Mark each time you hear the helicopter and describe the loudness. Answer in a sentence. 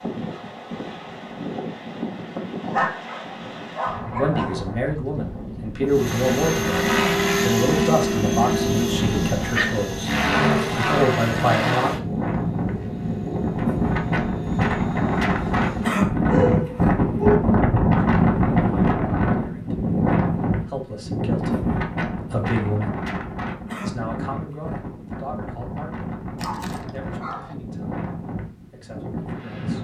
You can hear the helicopter from 5.9 to 15.9 s, getting quieter.